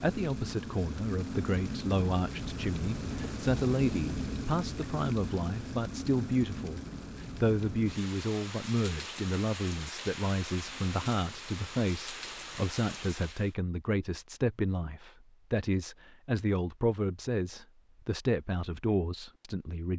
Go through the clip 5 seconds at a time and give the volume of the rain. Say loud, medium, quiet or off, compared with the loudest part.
loud, loud, medium, off.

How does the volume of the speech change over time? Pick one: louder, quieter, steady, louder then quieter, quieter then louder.
steady.